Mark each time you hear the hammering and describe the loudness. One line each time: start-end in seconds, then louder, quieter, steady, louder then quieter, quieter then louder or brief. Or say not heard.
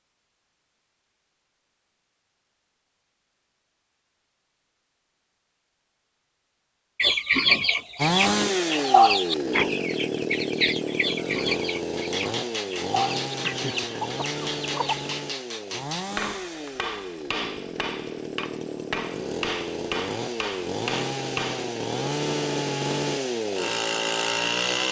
11.9-21.7 steady.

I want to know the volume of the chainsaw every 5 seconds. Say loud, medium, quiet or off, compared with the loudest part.
off, loud, medium, medium, loud.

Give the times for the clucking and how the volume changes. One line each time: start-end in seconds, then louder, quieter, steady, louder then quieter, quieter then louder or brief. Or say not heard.
7.0-15.2 quieter.